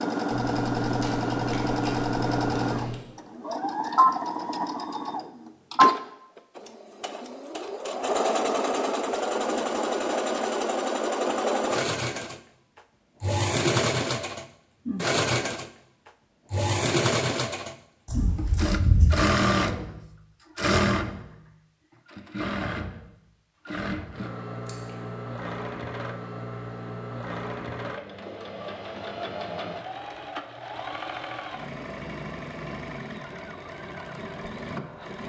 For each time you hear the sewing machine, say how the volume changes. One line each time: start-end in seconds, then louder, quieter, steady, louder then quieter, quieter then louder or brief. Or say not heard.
0.0-35.2 quieter.